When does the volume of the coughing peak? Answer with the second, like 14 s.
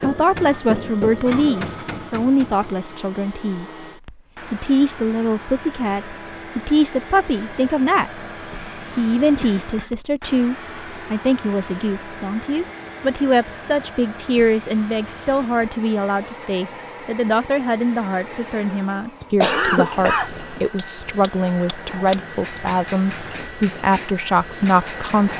20 s.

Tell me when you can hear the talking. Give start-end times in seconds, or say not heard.
0.0-3.8, 4.5-8.2, 8.9-25.3.